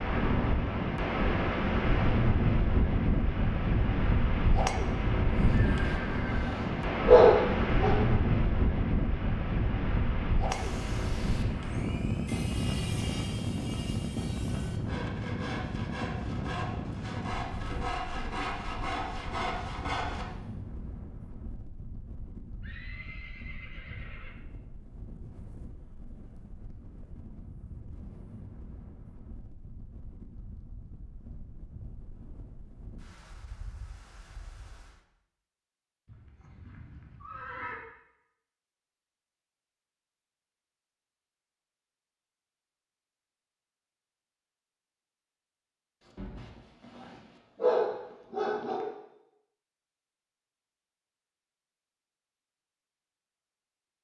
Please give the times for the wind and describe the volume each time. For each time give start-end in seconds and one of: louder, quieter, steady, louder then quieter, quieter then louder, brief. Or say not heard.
0.0-35.0 quieter.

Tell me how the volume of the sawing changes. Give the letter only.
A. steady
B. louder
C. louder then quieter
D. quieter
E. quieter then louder
B.